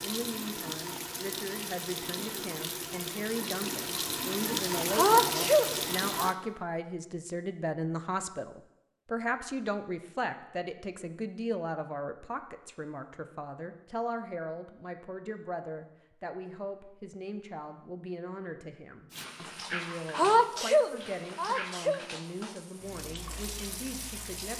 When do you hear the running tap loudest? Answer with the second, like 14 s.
5 s.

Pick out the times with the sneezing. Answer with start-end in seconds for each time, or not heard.
4.9-6.3, 20.1-22.0.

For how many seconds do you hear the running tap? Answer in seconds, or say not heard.
12 s.